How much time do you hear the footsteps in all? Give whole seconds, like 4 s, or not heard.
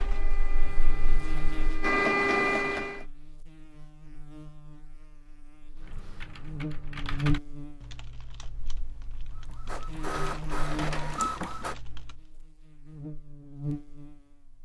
not heard.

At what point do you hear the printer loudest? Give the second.
2 s.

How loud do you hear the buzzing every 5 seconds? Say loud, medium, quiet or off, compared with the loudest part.
medium, loud, loud.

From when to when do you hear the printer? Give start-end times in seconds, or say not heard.
0.0-3.0, 9.3-11.8.